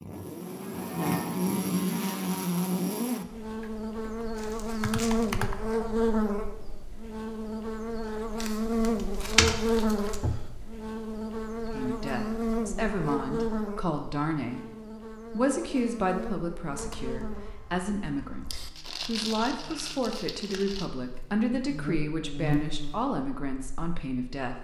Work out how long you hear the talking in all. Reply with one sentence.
You can hear the talking for 13 seconds altogether.